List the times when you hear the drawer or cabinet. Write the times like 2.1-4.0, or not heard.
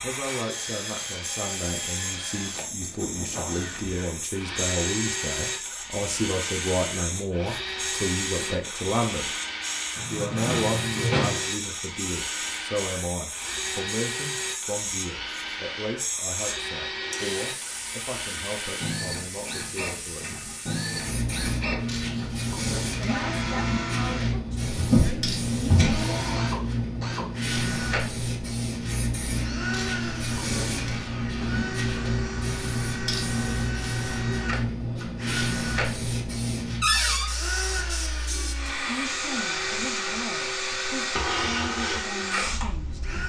9.9-11.4, 24.6-26.1, 36.8-37.3.